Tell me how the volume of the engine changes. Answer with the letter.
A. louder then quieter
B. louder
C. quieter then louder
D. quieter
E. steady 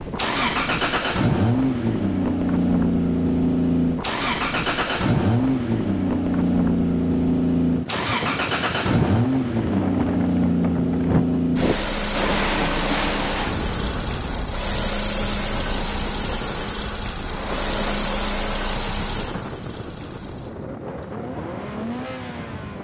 D.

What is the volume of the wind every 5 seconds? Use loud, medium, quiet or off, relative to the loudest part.
medium, medium, loud, medium, medium.